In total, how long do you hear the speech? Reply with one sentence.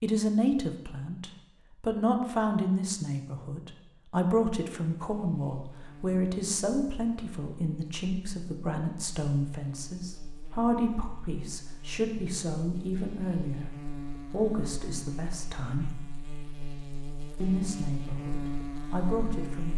You can hear the speech for 18 seconds altogether.